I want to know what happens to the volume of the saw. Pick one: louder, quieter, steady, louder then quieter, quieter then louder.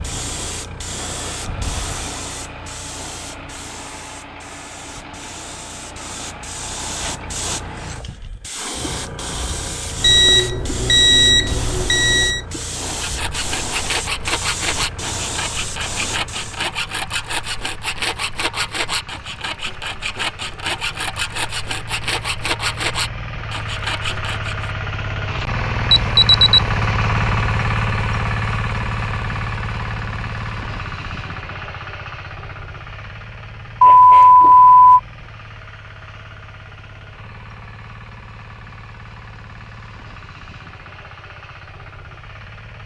steady.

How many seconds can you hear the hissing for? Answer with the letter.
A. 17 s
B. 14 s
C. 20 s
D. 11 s
A.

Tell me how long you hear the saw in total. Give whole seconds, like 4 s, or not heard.
12 s.